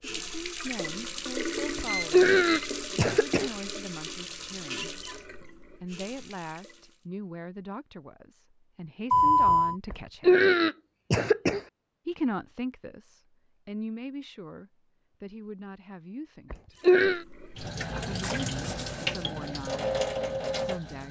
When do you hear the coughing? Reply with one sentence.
The coughing can be heard from 1.8 to 3.5 s, from 9.9 to 11.6 s and from 16.5 to 17.2 s.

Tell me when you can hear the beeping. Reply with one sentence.
The beeping can be heard from 1.6 to 2.8 s, from 9.1 to 9.8 s and from 18.2 to 19.2 s.